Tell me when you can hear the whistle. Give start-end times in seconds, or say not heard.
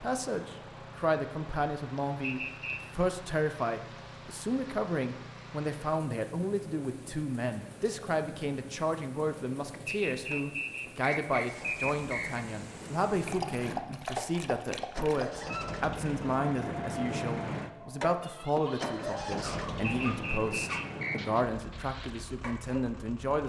2.2-2.8, 9.8-12.4, 19.9-21.2.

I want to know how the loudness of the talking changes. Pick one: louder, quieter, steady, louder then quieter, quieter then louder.
steady.